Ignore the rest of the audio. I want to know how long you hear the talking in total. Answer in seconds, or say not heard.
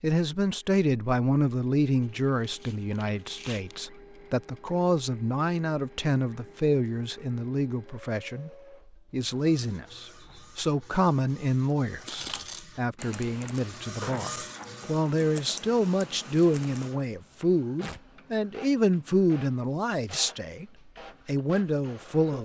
21 s.